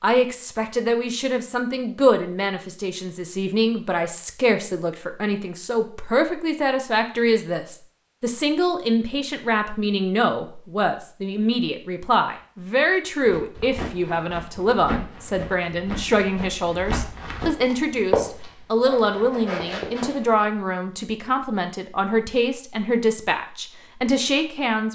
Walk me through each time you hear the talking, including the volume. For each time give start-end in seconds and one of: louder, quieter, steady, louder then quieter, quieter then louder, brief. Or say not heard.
0.0-24.9 steady.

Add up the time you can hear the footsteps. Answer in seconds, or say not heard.
7 s.